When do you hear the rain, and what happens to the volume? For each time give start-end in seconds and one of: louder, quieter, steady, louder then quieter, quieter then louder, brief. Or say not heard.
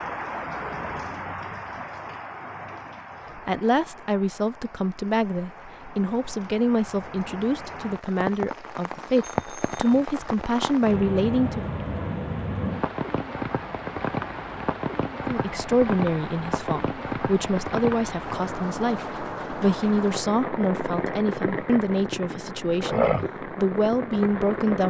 0.0-24.8 louder.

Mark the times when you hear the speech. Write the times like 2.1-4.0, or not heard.
3.4-11.7, 15.2-24.8.